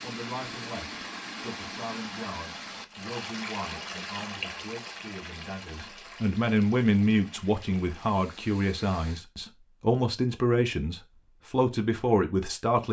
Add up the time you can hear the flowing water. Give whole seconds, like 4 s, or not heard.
9 s.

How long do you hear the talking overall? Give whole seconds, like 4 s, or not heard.
13 s.